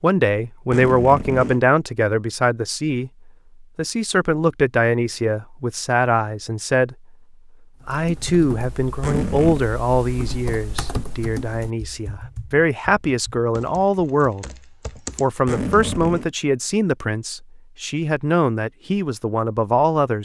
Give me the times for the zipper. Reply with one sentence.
The zipper can be heard from 0.7 to 1.6 s, from 9.0 to 9.7 s and from 15.4 to 16.3 s.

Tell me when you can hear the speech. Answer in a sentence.
You can hear the speech from 0.0 to 7.0 s, from 7.8 to 14.4 s and from 15.2 to 20.2 s.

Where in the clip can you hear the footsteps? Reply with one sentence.
The footsteps can't be heard in this clip.